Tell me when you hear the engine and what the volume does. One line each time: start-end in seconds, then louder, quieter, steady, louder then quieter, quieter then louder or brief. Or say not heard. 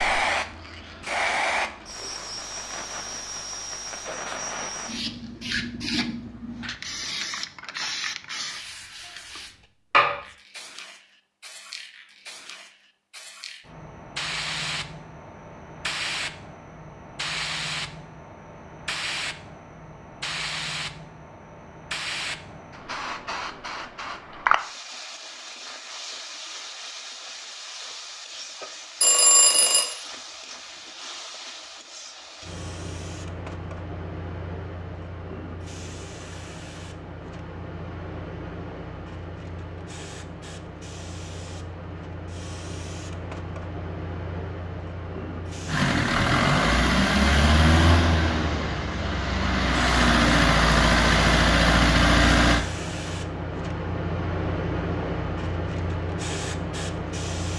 45.6-52.6 quieter then louder.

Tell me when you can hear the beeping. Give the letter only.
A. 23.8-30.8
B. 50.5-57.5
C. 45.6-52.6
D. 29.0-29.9
D.